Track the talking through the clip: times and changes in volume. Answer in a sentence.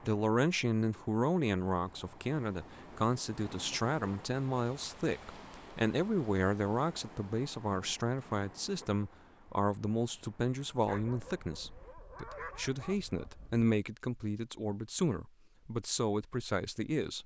The talking can be heard from 0.0 to 17.2 s, at a steady volume.